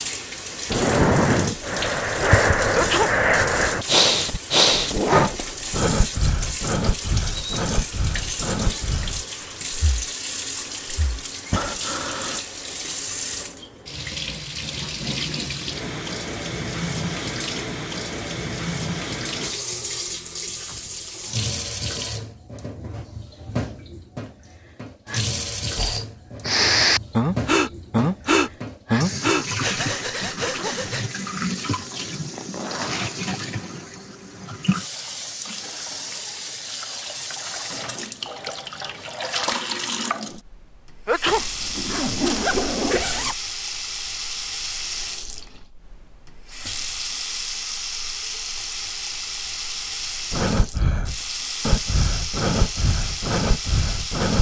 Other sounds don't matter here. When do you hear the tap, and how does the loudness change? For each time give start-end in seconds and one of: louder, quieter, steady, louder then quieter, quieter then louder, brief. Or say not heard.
0.0-54.3 steady.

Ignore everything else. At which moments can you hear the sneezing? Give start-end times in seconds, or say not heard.
2.7-3.1, 30.4-30.8, 41.0-41.5.